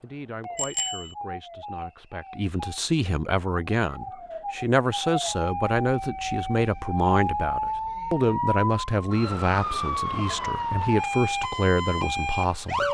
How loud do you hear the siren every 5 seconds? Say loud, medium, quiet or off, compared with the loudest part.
medium, loud, loud.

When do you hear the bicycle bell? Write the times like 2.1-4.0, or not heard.
0.6-1.1.